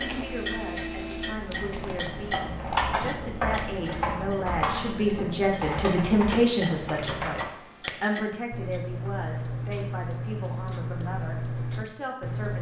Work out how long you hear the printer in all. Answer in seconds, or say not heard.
2 s.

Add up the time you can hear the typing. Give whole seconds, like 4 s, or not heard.
6 s.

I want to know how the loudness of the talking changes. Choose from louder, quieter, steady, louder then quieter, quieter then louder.
louder then quieter.